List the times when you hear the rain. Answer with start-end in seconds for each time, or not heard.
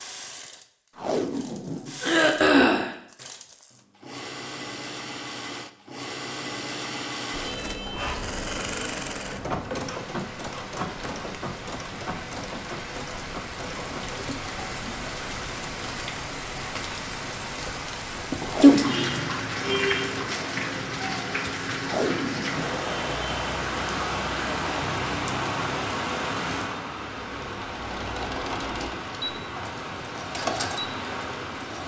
7.3-31.8.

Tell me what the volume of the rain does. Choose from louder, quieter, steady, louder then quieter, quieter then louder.
louder then quieter.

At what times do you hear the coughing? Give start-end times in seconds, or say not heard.
2.0-3.0, 24.3-24.9.